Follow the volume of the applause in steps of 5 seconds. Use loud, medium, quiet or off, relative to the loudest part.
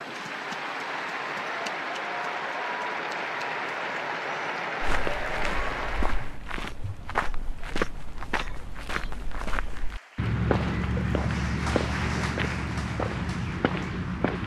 loud, loud, medium.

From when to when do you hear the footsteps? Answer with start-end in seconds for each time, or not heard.
4.8-14.4.